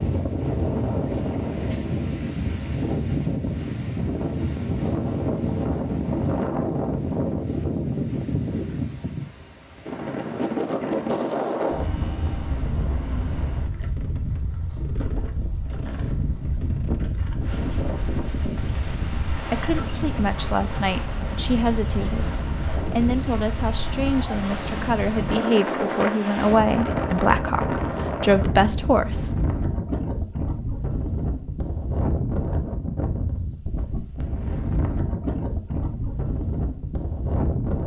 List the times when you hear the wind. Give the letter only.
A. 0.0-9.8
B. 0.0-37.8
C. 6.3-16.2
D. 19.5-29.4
B.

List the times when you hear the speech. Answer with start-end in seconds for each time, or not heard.
19.5-29.4.